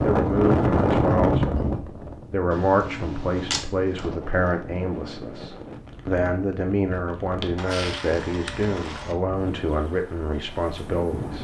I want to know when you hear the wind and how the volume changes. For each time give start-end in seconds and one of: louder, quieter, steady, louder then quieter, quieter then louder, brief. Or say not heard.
0.0-11.3 quieter.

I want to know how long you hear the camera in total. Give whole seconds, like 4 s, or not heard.
3 s.